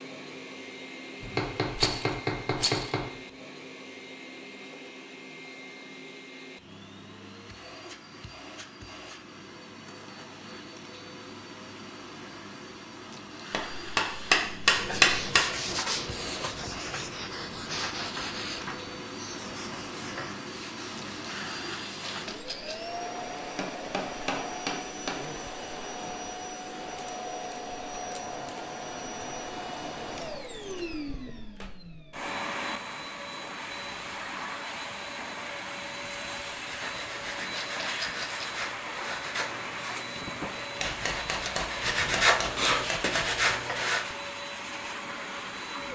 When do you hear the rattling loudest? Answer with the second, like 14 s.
2 s.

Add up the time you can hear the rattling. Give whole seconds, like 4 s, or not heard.
3 s.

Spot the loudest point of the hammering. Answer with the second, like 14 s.
15 s.